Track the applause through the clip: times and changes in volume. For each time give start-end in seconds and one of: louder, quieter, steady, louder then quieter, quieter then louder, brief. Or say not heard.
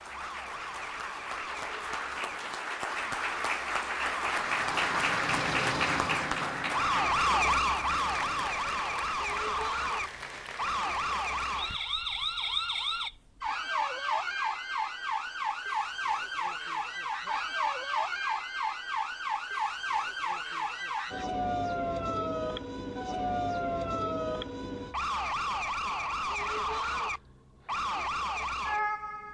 0.0-11.9 louder then quieter.